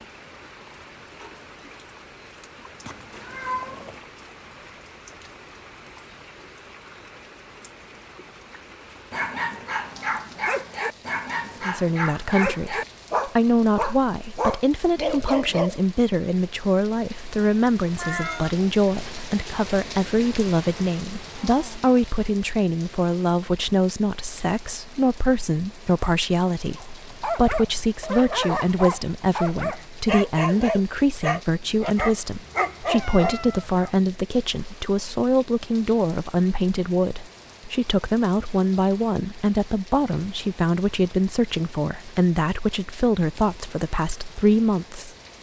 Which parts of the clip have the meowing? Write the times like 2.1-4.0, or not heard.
2.9-4.0, 17.9-18.6, 32.5-33.9.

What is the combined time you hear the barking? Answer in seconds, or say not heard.
14 s.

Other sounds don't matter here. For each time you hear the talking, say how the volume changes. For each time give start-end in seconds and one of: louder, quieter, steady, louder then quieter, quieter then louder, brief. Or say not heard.
11.7-45.1 steady.